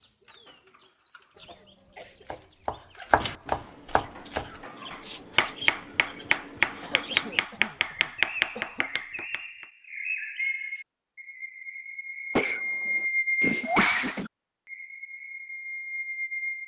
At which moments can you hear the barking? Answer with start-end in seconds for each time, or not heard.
not heard.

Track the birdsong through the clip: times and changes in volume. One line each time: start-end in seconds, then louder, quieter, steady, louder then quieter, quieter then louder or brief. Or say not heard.
0.0-16.6 louder.